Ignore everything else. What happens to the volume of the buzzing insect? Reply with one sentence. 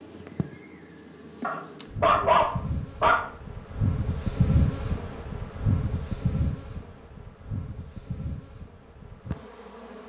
The loudness of the buzzing insect goes up, then down.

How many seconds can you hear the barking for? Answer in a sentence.
You can hear the barking for 2 seconds altogether.